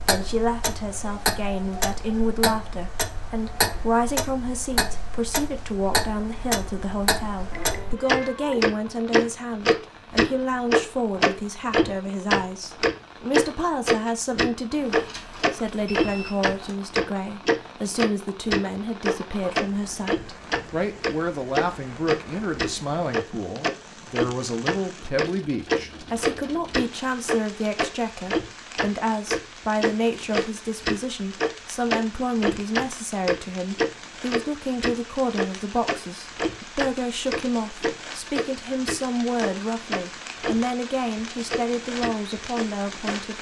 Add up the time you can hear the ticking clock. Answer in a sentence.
You can hear the ticking clock for 42 seconds altogether.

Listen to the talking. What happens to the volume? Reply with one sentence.
The volume of the talking stays about the same.